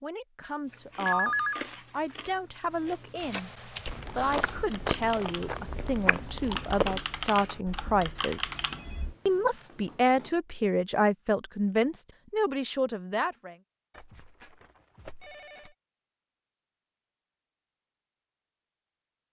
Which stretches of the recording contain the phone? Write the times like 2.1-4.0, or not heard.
1.1-1.6, 8.5-10.3, 13.9-15.8.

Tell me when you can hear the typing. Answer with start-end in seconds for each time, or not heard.
3.1-9.2.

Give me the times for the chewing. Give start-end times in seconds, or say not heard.
0.7-7.0.